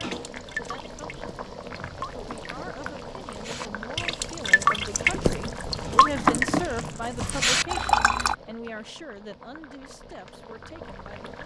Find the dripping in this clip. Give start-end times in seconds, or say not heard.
0.0-8.3.